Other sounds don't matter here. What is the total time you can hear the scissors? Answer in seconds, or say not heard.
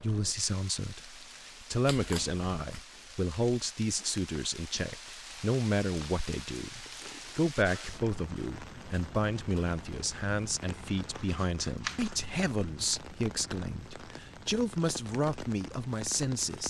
2 s.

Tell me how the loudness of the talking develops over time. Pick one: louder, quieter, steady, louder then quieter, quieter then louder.
steady.